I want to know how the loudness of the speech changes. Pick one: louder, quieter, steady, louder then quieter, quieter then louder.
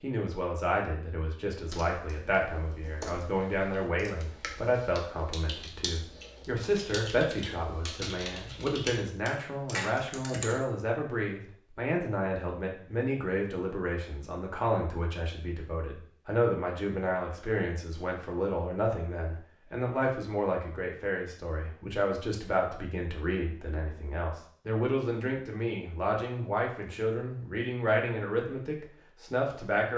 steady.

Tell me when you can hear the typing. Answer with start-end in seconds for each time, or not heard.
1.6-10.6.